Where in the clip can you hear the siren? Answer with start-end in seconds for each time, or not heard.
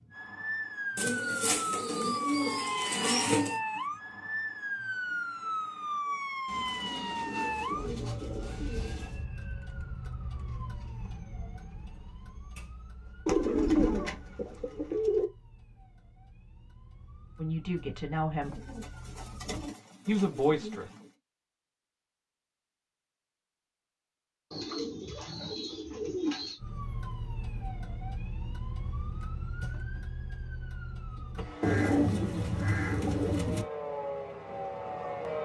0.0-19.7, 26.6-35.3.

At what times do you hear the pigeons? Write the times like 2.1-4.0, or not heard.
0.9-3.6, 6.5-9.2, 13.2-15.2, 18.4-21.1, 24.5-26.6, 31.6-33.6.